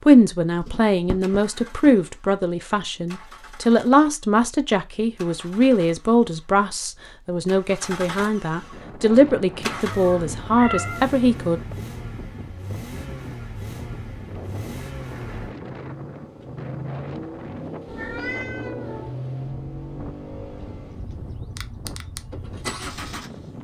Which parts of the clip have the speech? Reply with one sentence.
The speech can be heard from 0.1 to 11.6 s.